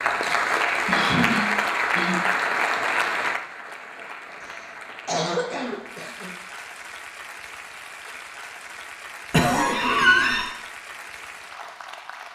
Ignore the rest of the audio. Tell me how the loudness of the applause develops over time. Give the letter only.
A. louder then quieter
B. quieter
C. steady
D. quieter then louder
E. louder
B.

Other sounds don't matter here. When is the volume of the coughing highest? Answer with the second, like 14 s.
10 s.